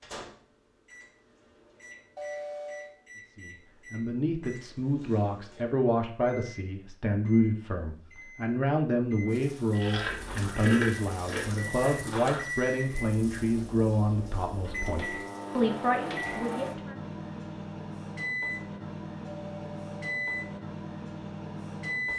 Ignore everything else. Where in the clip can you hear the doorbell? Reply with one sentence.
The doorbell can be heard from 2.1 to 3.0 s and from 19.2 to 20.6 s.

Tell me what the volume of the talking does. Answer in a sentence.
The loudness of the talking stays about the same.